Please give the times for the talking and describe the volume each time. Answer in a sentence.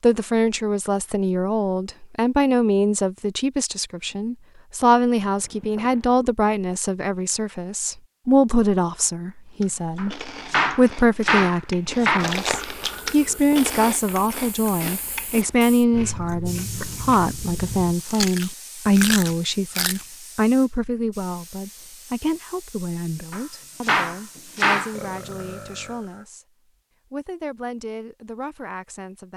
The talking can be heard from 0.0 to 26.4 s, getting quieter; and briefly from 27.1 to 29.3 s.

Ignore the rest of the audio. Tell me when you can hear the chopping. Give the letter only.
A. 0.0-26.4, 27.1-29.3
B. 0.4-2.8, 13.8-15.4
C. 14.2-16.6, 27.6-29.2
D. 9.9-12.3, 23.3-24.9
D.